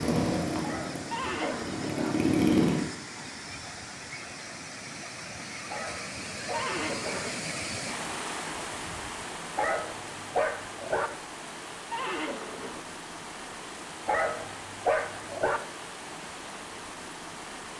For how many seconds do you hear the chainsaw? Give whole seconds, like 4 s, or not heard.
3 s.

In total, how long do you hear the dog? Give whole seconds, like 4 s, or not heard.
6 s.